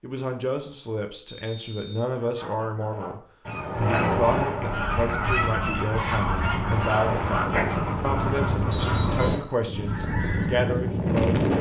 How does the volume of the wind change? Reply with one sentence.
The volume of the wind goes up.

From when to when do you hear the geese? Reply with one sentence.
The geese can be heard from 2.1 to 10.7 s.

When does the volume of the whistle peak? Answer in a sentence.
The volume of the whistle peaks at 9 seconds.